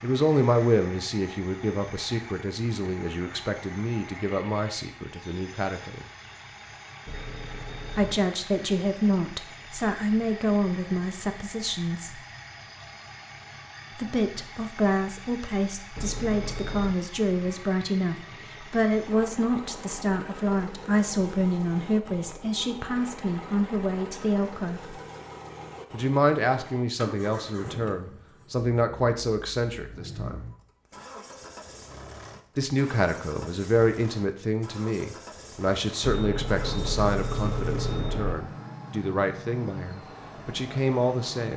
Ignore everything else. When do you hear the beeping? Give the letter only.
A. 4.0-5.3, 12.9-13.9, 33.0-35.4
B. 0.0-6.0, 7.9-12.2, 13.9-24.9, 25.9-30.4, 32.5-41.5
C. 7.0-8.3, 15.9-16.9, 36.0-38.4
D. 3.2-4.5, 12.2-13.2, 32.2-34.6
C.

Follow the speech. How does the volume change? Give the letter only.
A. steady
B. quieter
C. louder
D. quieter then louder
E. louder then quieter
A.